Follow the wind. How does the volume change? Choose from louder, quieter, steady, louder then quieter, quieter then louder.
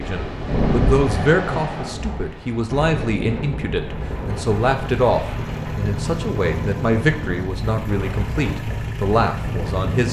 quieter.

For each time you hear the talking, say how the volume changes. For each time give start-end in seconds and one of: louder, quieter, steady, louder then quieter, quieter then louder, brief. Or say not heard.
0.0-10.0 steady.